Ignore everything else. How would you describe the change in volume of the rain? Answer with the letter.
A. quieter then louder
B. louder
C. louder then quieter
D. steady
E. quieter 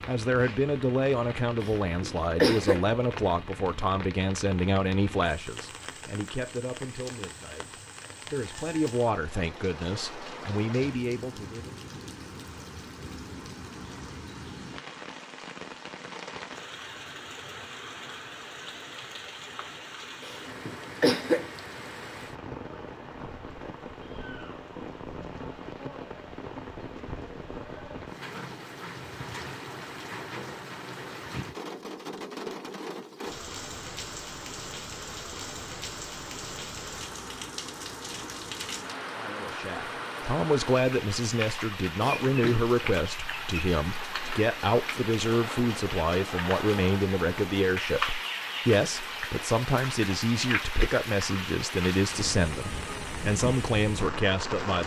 B.